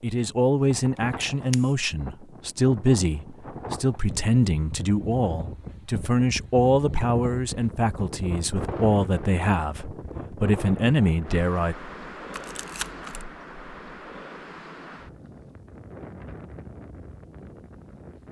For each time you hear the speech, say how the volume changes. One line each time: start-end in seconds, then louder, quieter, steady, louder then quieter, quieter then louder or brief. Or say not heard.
0.0-11.8 steady.